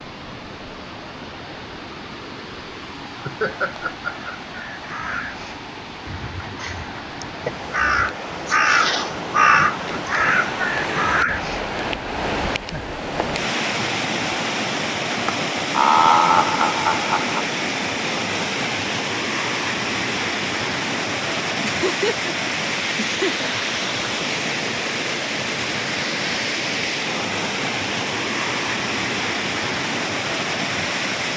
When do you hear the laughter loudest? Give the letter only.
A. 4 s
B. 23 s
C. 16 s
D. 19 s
C.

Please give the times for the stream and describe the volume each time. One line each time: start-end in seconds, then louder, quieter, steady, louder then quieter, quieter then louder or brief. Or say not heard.
0.0-31.3 louder.